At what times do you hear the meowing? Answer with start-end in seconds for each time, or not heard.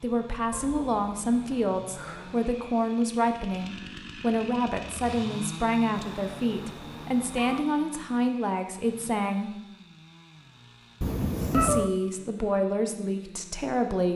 0.5-2.4, 6.0-7.7, 11.0-11.9.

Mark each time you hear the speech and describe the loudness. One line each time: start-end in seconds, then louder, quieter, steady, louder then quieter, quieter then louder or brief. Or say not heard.
0.0-9.5 steady
11.5-14.1 brief.